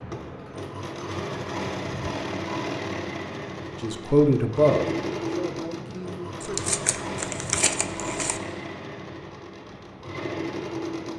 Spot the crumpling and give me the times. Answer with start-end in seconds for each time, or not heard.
6.4-8.4.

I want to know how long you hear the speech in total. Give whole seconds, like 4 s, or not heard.
3 s.